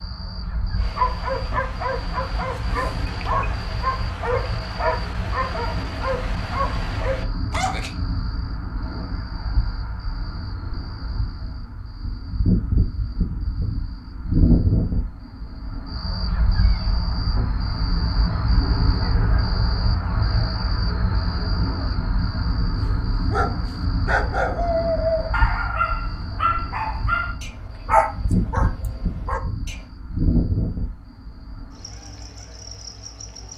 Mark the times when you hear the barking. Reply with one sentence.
The barking can be heard from 0.8 to 7.9 s and from 22.9 to 29.8 s.